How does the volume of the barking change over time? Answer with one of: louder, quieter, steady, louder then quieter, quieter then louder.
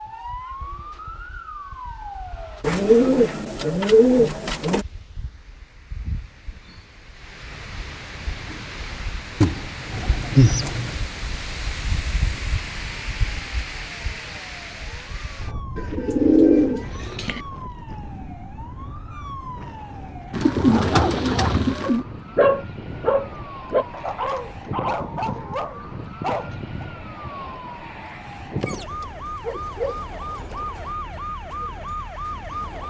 louder then quieter.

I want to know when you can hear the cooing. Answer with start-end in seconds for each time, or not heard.
2.6-4.8, 9.4-10.9, 15.8-17.4, 20.3-22.1, 28.6-30.6.